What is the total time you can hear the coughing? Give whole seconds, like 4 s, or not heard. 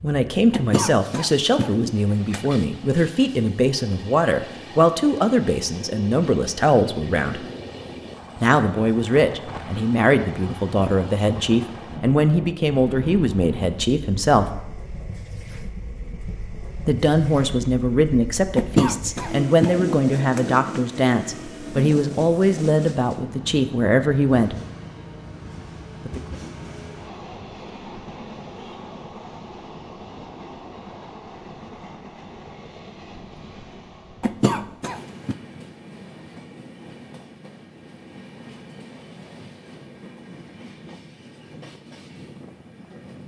5 s.